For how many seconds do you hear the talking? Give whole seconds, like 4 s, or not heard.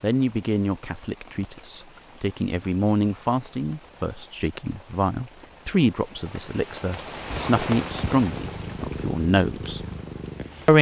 10 s.